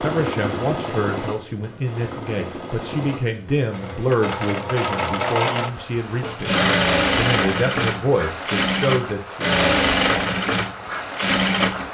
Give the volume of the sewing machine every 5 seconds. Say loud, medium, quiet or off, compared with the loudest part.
medium, loud, loud.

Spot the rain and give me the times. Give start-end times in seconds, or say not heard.
not heard.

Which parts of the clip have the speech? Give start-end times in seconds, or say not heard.
0.0-6.5, 7.2-9.5.